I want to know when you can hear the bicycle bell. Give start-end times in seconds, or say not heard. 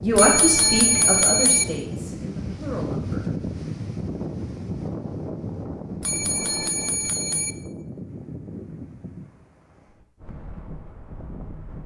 0.1-1.6, 6.0-7.5.